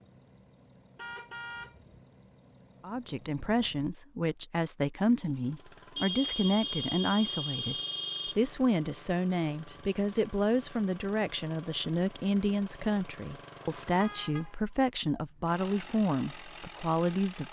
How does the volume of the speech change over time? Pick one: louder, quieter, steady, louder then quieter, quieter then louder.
steady.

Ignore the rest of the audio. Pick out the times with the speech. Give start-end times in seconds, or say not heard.
2.8-17.4.